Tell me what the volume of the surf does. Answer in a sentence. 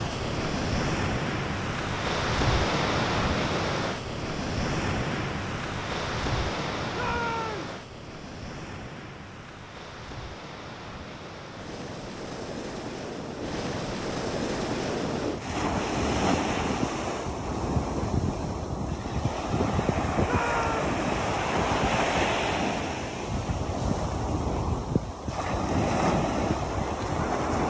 The volume of the surf goes down, then up.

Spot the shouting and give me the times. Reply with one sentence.
You can hear the shouting from 6.9 to 7.8 s and from 20.2 to 20.9 s.